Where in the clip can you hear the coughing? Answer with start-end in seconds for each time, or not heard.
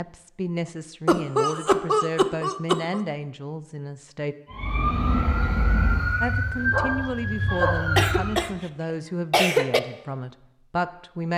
1.1-3.0, 8.0-8.5, 9.3-9.8.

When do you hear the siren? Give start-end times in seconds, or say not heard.
4.5-8.4.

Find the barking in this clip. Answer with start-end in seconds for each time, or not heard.
6.6-7.9.